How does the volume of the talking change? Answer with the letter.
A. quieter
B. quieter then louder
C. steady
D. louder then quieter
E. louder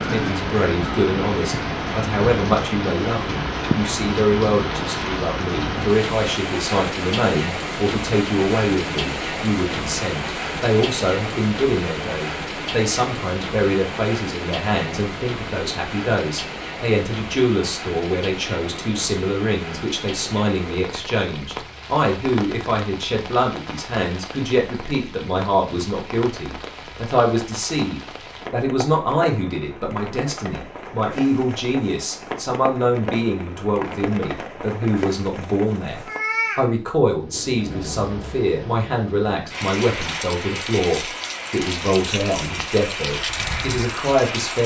C.